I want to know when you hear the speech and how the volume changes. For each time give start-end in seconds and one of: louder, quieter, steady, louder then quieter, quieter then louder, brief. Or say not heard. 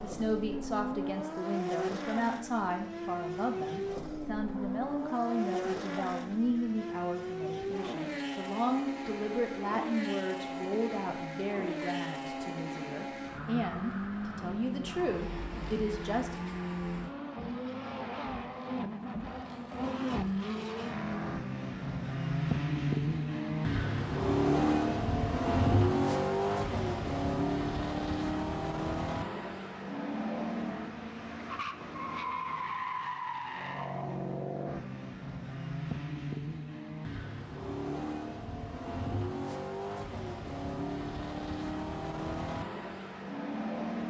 0.0-16.4 steady.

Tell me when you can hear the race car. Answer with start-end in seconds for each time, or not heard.
0.0-44.0.